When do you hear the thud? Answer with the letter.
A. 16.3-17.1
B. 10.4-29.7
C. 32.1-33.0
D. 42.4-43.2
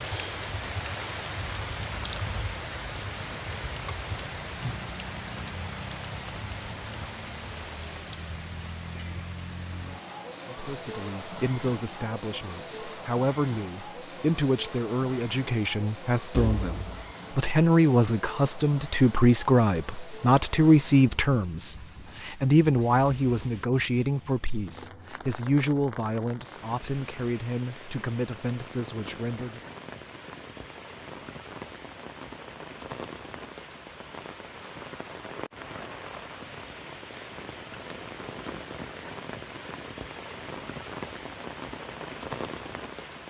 A.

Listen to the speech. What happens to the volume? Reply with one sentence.
The volume of the speech goes up, then down.